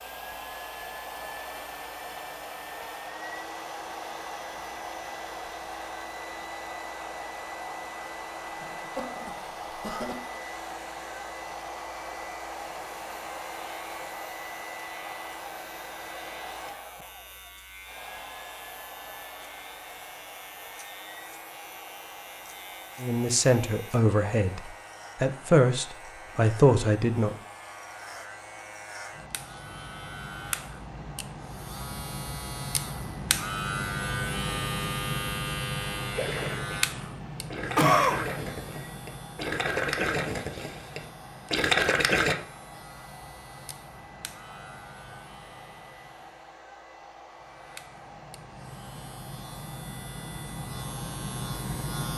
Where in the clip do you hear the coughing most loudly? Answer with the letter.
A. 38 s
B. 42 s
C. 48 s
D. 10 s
A.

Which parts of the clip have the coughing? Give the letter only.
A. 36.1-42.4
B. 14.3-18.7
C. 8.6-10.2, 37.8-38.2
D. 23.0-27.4
C.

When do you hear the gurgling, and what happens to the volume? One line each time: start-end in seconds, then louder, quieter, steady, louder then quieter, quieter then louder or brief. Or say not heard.
36.1-42.4 louder.